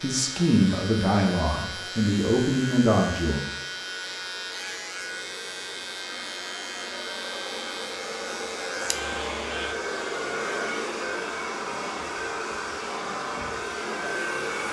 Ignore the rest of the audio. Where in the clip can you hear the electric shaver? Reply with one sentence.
The electric shaver can be heard from 0.0 to 9.8 s.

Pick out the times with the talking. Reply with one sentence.
The talking can be heard from 0.0 to 3.4 s.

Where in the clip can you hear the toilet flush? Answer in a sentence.
The toilet flush can't be heard in this clip.